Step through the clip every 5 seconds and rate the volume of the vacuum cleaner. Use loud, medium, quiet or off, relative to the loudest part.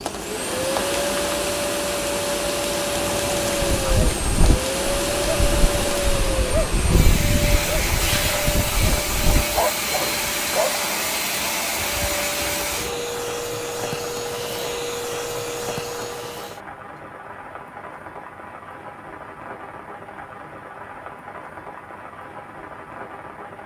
loud, loud, loud, medium, off.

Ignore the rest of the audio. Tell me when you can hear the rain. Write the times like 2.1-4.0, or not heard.
0.0-23.6.